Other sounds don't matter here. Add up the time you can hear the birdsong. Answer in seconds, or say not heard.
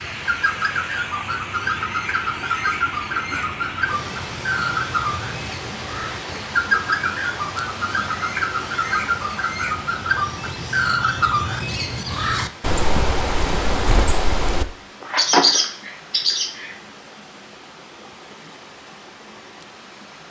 17 s.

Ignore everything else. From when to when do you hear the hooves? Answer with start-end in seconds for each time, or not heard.
not heard.